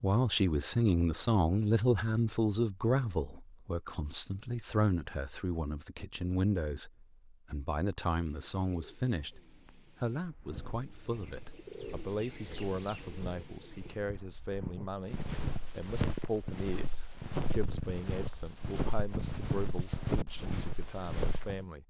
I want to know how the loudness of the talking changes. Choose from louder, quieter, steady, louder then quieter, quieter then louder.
quieter.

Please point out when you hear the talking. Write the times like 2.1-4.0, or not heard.
0.0-21.8.